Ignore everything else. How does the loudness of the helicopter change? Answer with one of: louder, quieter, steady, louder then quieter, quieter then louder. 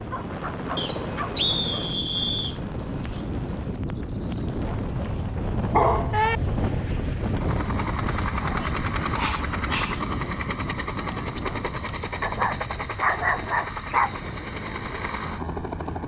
quieter then louder.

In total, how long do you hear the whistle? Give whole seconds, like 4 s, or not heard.
2 s.